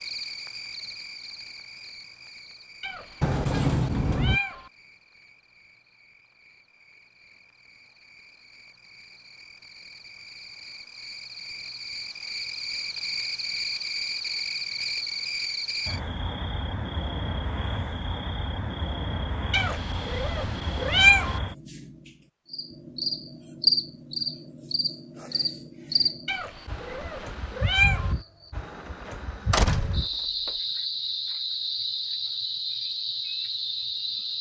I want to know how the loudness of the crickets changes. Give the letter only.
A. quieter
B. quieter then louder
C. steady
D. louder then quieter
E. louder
E.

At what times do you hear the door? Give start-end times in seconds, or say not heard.
3.2-4.4, 29.5-30.5.